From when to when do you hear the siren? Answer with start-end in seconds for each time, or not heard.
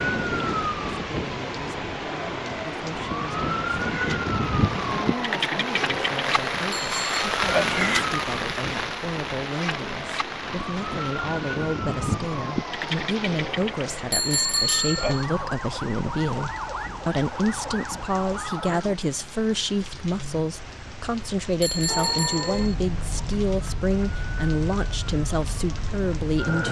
0.0-18.9, 21.9-26.6.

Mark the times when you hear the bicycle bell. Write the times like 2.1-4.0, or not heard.
6.7-7.2, 14.1-15.2, 21.6-22.8.